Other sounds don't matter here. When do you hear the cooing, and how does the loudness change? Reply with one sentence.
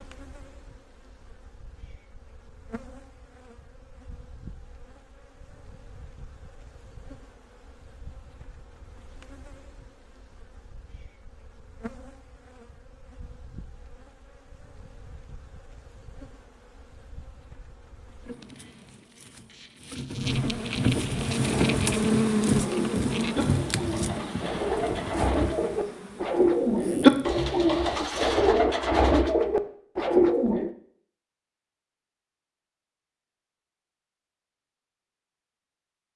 The cooing can be heard from 21.1 to 30.7 s, getting louder.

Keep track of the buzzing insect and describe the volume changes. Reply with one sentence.
The loudness of the buzzing insect goes up.